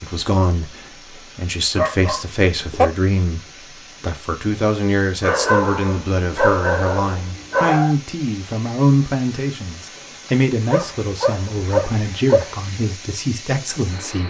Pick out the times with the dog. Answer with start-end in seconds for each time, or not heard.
1.8-2.9, 5.2-8.0, 10.7-12.5.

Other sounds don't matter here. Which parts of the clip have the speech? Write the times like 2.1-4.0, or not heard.
0.0-14.2.